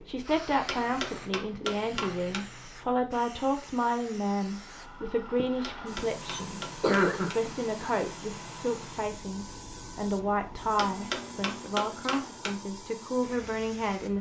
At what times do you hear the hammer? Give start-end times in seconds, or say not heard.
0.7-2.5, 5.6-7.5, 10.8-12.6.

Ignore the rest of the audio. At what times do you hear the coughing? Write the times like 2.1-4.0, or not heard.
6.3-7.8.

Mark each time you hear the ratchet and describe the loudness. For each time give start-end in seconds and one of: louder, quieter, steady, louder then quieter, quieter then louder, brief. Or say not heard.
not heard.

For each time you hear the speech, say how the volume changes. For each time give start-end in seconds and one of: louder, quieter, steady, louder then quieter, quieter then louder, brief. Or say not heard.
0.0-14.1 steady.